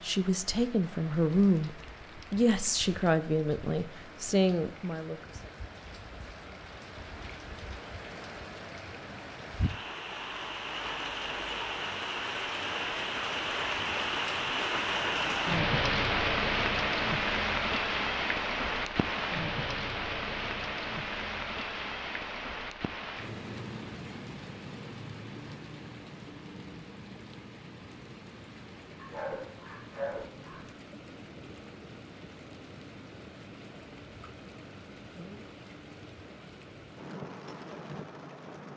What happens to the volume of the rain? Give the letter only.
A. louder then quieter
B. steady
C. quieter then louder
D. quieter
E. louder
A.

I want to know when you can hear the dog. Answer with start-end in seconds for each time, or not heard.
28.9-30.7.